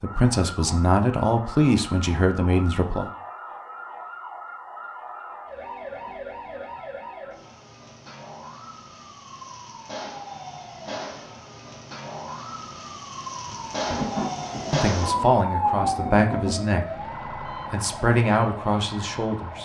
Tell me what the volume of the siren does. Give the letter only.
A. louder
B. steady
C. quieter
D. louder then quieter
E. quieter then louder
A.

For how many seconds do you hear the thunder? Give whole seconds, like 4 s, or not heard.
3 s.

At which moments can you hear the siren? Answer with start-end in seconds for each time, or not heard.
0.0-19.5.